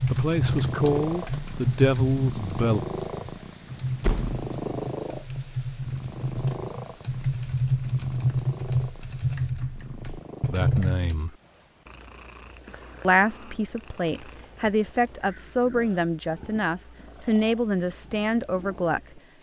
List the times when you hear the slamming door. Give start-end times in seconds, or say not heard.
4.0-4.5.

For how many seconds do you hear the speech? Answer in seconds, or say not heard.
10 s.